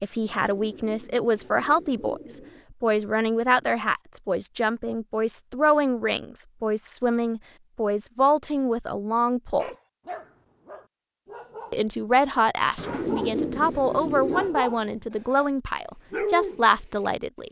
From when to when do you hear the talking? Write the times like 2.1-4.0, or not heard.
0.0-9.7, 11.7-17.4.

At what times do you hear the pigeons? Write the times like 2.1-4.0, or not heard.
0.3-2.6, 12.8-14.6.